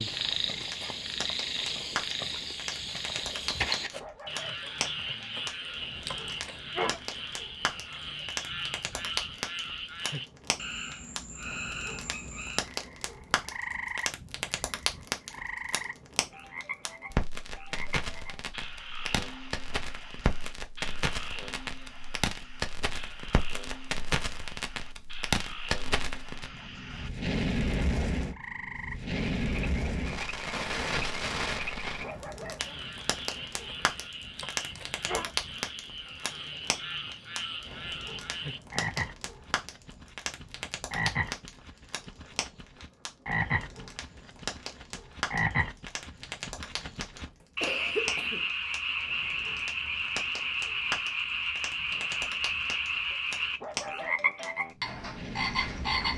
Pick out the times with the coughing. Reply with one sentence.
The coughing can be heard from 47.1 to 48.5 s.